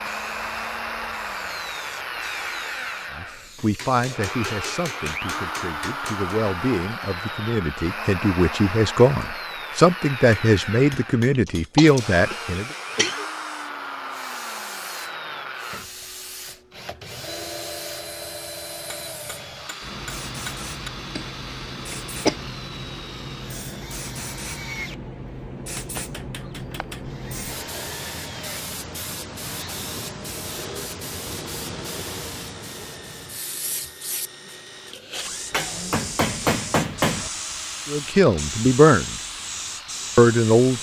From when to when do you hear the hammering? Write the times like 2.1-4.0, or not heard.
3.5-6.3, 10.4-11.9, 18.9-20.9, 25.8-27.2, 35.5-37.3.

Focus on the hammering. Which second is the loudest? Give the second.
37 s.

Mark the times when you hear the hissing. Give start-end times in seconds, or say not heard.
0.0-4.2, 11.9-40.7.